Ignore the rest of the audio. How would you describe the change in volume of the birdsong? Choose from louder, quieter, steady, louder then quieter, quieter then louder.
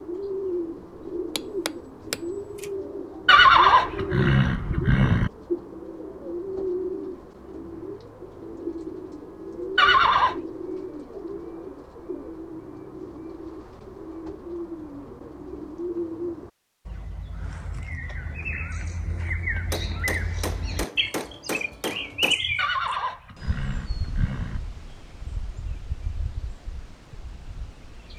steady.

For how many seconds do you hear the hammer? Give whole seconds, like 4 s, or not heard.
4 s.